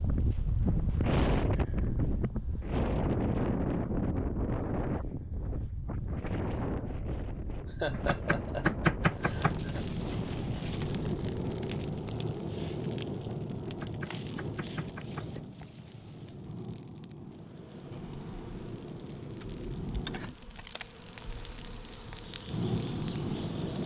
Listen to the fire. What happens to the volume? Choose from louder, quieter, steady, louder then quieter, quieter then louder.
quieter then louder.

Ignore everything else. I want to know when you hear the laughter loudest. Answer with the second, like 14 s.
8 s.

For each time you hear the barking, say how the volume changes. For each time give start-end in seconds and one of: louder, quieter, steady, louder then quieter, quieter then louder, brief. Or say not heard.
not heard.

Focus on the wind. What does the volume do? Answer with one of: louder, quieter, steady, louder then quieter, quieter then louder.
quieter.